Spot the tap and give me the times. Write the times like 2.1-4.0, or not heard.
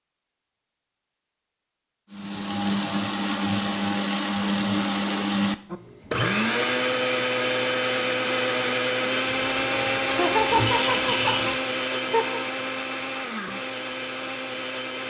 9.2-11.6.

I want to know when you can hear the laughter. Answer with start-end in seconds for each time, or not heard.
10.1-12.4.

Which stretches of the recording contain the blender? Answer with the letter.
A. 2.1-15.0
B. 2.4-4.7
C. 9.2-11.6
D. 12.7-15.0
A.